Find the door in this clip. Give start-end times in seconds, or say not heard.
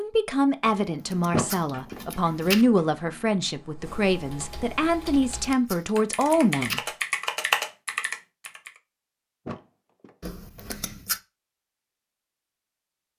1.3-2.0, 9.4-10.2.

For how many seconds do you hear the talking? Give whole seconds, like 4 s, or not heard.
7 s.